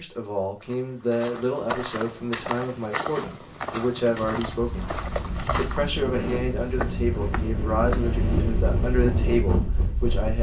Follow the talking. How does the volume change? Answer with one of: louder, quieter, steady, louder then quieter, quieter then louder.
steady.